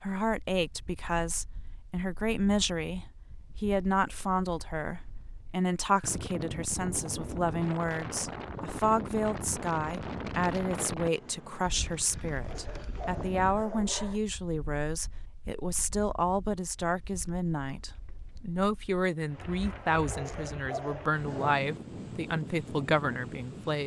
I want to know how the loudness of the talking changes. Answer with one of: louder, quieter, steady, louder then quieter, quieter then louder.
steady.